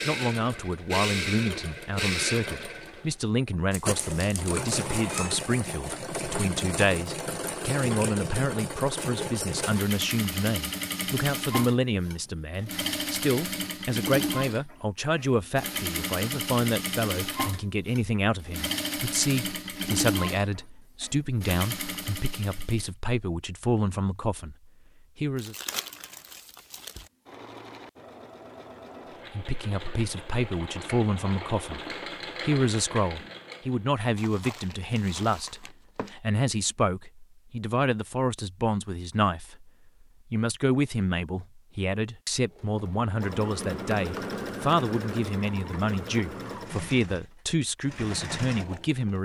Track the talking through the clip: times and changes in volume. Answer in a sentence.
You can hear the talking from 0.1 to 25.6 s, at a steady volume; from 29.3 to 39.7 s, at a steady volume; and from 40.3 to 49.2 s, at a steady volume.